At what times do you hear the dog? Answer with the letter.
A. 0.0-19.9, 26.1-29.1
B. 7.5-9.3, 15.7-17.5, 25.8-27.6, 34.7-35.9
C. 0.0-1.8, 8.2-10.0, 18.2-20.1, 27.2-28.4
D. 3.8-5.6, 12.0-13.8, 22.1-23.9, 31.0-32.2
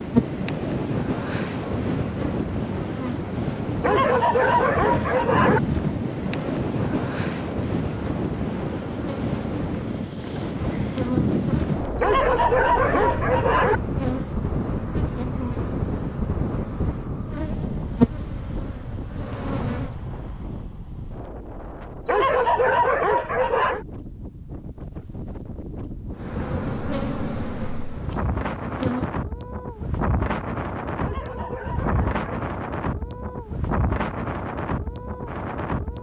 D.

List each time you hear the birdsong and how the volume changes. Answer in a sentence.
The birdsong can't be heard in this clip.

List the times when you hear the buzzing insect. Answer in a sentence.
You can hear the buzzing insect from 0.0 to 19.9 s and from 26.1 to 29.1 s.